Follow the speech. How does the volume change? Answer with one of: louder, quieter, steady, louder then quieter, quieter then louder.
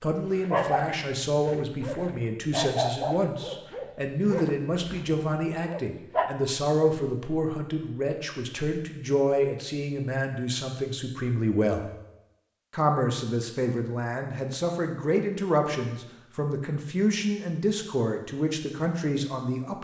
steady.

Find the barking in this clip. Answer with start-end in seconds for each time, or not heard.
0.2-6.3.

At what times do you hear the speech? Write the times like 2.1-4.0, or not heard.
0.0-11.8, 12.7-19.8.